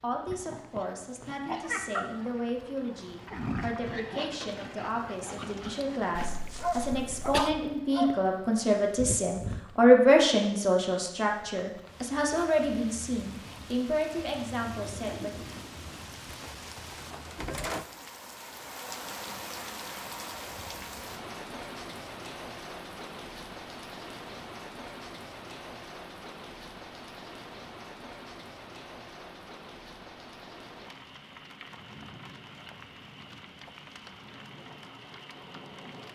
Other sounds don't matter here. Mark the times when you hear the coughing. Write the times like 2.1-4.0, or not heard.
6.2-7.5.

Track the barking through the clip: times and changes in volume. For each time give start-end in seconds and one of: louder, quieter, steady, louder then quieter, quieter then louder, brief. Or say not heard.
0.3-8.3 quieter then louder.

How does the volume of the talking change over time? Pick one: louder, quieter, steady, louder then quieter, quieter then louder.
louder then quieter.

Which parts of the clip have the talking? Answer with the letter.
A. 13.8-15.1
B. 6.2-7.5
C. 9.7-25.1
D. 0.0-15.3
D.